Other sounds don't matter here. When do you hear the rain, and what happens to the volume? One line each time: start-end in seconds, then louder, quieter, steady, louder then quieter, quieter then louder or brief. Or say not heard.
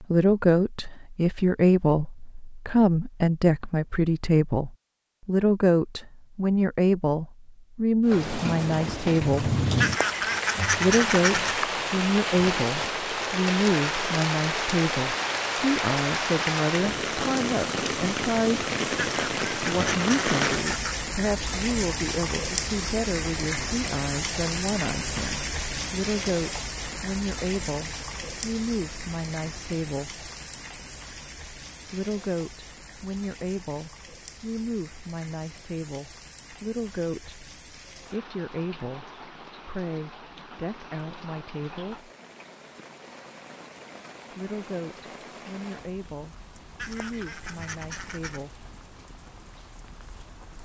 8.1-50.6 quieter.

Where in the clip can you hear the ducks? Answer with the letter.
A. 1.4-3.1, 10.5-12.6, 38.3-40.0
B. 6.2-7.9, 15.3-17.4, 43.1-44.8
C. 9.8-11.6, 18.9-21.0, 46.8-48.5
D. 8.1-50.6
C.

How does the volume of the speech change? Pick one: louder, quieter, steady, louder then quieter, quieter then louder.
quieter.